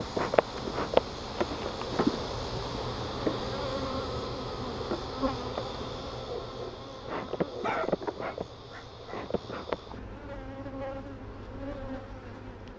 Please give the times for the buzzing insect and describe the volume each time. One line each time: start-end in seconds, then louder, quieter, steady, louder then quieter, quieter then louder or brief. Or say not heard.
0.0-12.7 quieter.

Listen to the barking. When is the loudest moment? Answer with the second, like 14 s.
8 s.